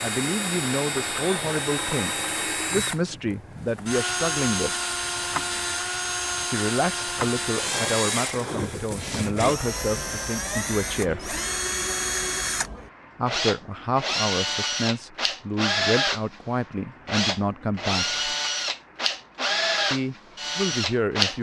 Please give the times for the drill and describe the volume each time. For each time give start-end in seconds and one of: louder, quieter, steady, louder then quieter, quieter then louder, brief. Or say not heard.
0.0-21.3 steady.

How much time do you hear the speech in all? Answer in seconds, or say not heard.
16 s.